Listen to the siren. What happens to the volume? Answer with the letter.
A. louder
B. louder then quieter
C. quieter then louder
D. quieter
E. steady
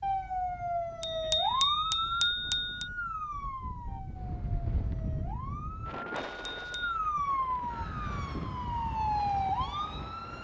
C.